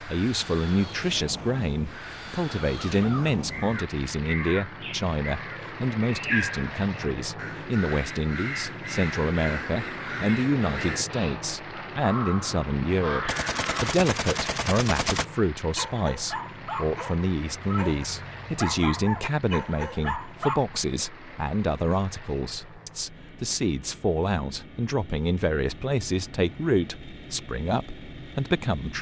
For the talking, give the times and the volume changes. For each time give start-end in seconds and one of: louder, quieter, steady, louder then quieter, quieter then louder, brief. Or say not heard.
0.0-28.9 steady.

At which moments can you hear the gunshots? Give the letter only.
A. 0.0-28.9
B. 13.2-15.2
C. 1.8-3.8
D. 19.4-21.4
B.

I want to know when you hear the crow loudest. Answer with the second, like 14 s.
6 s.